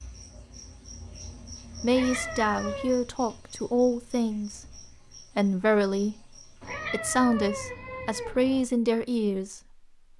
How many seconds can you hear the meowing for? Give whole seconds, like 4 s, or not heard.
3 s.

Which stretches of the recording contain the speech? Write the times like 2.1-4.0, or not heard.
1.8-6.2, 6.9-9.6.